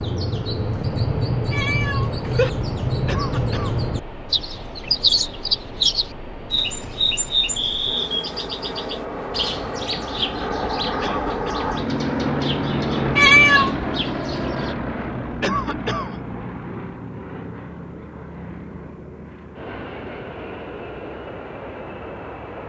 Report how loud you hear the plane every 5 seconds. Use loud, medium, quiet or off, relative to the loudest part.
quiet, medium, loud, medium, medium.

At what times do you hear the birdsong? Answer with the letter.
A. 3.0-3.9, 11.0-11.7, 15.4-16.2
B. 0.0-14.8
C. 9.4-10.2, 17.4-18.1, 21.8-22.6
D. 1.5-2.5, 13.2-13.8
B.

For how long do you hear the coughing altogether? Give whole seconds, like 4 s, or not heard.
2 s.